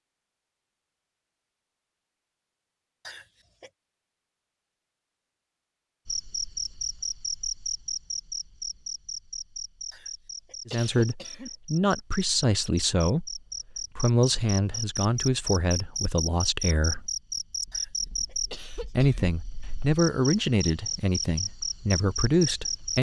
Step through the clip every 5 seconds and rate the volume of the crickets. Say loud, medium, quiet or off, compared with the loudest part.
off, loud, medium, loud, loud.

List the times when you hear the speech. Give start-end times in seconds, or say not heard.
10.7-17.1, 18.9-22.9.